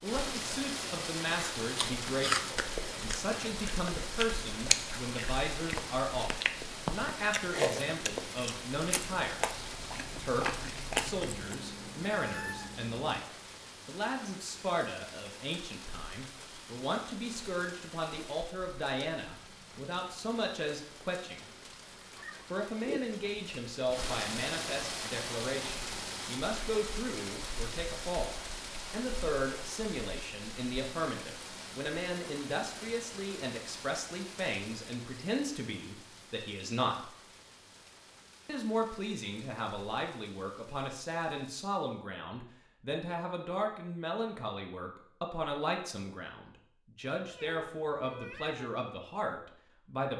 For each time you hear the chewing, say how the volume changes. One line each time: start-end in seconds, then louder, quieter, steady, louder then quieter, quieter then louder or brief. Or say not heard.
1.3-11.6 steady.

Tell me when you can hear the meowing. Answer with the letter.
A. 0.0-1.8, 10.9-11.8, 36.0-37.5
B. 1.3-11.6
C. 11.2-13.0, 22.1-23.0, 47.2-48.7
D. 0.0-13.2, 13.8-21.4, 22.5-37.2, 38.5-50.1
C.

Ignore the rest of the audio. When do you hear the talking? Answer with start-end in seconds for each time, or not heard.
0.0-13.2, 13.8-21.4, 22.5-37.2, 38.5-50.1.